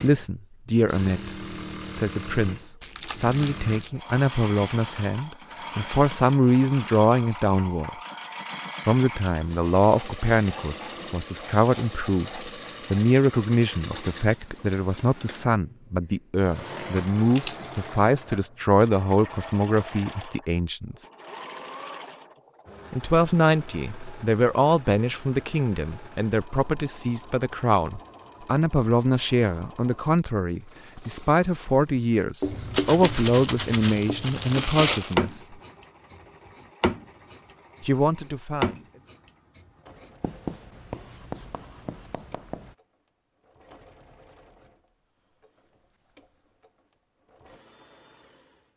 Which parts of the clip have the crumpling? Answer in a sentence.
The crumpling can be heard from 2.8 to 3.9 s, from 16.9 to 17.8 s and from 32.7 to 35.3 s.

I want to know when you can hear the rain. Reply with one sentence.
The rain can't be heard in this clip.